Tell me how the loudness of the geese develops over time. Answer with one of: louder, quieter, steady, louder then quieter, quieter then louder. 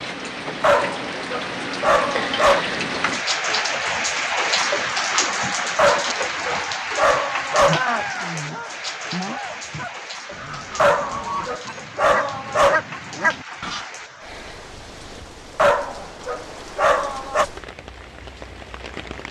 louder.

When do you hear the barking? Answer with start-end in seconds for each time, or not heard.
0.6-2.6, 5.8-7.8, 10.8-12.8, 15.6-17.4.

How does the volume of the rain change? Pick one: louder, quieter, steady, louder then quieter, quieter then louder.
quieter.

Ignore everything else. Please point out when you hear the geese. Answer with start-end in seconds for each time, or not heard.
7.7-13.8.